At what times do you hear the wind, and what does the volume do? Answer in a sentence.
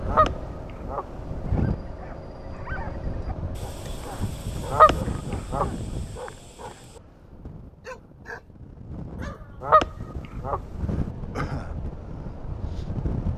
The wind can be heard from 0.0 to 13.3 s, getting quieter then louder.